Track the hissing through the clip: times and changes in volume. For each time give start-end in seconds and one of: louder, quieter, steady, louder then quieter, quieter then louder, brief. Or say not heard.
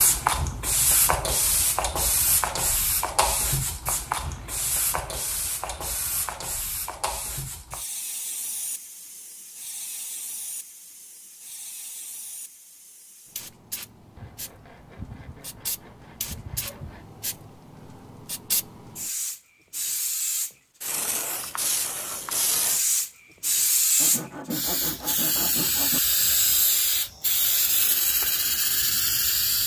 0.0-29.6 quieter then louder.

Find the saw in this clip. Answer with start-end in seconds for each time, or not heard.
4.2-6.3, 14.2-17.1, 24.0-26.0.